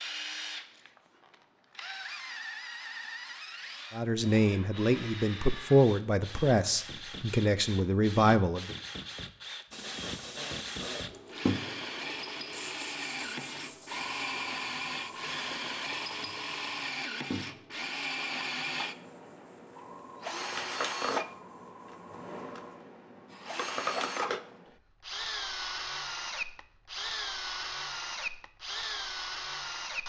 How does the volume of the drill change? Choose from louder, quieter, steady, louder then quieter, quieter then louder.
louder.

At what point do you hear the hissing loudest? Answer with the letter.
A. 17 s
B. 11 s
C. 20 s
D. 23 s
B.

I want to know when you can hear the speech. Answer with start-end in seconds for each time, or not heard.
3.9-8.8.